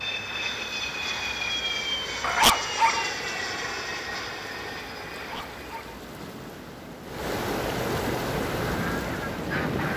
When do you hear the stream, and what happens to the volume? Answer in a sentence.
The stream can be heard from 0.0 to 9.9 s, getting louder.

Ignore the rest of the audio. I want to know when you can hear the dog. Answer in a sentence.
The dog can be heard from 2.2 to 3.0 s and from 5.2 to 6.0 s.